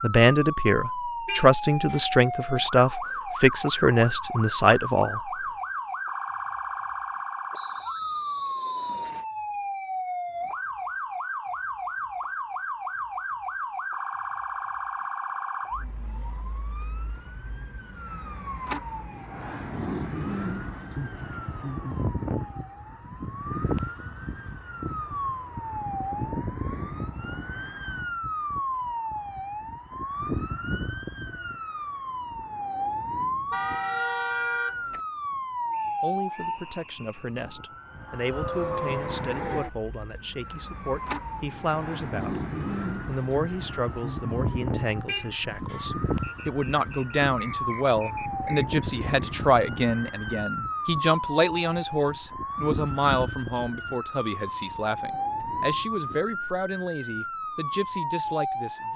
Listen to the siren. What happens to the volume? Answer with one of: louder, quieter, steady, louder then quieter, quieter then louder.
steady.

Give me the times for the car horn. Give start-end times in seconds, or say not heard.
1.2-2.0, 33.5-35.0, 45.0-45.9.